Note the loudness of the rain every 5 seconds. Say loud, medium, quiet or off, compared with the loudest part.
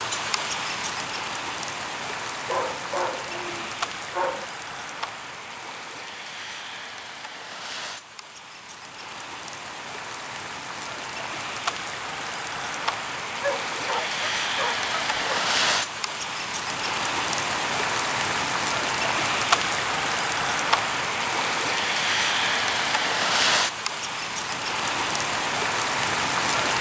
medium, quiet, medium, loud, loud, loud.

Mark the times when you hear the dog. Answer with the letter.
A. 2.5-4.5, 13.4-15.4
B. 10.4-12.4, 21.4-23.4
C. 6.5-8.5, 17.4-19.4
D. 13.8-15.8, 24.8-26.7
A.